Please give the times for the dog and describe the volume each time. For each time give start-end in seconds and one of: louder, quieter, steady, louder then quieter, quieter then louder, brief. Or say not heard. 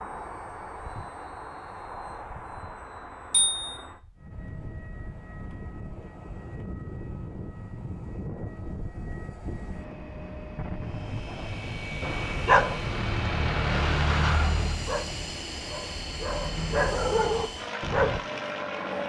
12.0-18.2 quieter then louder.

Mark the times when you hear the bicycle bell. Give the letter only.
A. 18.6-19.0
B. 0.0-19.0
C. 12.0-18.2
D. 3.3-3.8
D.